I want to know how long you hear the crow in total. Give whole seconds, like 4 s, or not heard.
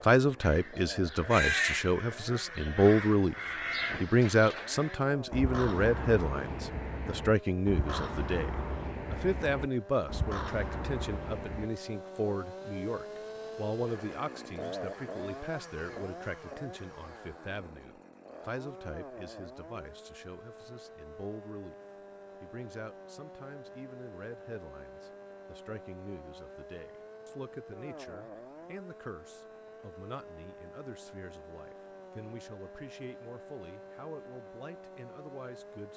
11 s.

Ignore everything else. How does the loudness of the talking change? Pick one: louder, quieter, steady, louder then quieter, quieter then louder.
quieter.